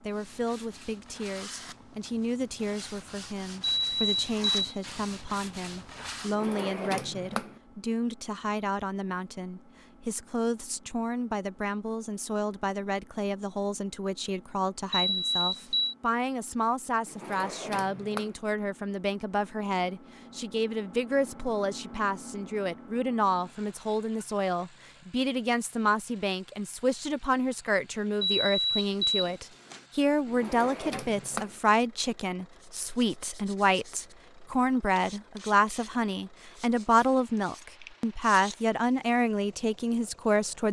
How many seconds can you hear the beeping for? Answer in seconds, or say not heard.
4 s.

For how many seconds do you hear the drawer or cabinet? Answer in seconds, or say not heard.
4 s.